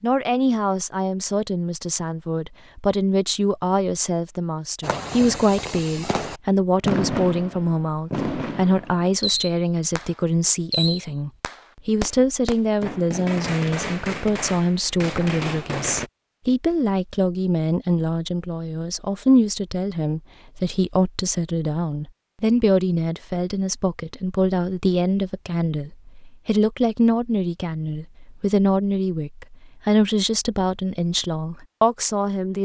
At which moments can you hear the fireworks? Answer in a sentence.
You can hear the fireworks from 4.8 to 16.1 s.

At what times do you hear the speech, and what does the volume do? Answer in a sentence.
The speech can be heard from 0.0 to 32.6 s, at a steady volume.